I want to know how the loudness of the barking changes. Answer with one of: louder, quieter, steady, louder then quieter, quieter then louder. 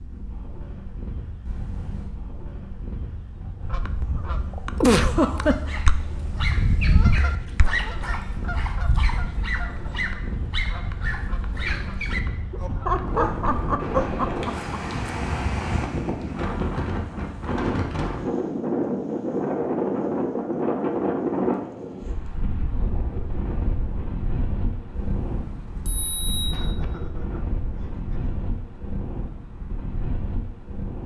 louder.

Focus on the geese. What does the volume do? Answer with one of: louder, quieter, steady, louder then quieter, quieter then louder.
louder then quieter.